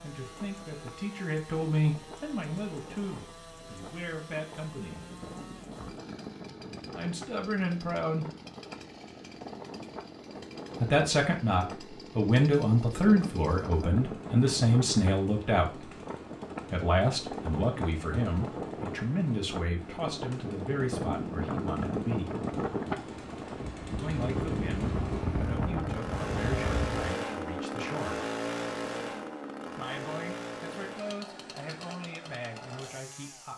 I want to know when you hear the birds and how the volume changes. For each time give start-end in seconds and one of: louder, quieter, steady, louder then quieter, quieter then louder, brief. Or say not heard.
not heard.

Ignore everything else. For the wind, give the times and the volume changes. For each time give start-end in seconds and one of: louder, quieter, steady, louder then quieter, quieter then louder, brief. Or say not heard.
0.1-27.1 louder.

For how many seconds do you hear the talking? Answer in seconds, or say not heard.
25 s.